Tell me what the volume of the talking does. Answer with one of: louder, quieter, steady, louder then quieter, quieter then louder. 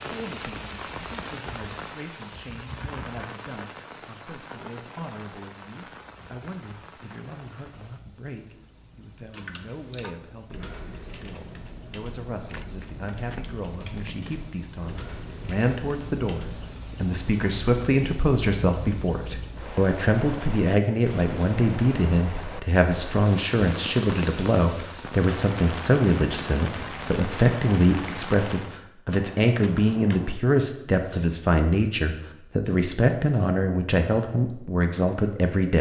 louder.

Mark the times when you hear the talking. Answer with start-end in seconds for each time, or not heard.
0.0-35.7.